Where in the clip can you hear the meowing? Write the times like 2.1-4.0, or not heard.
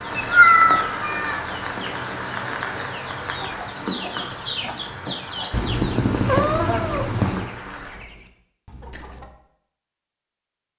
0.1-1.4, 5.5-7.5.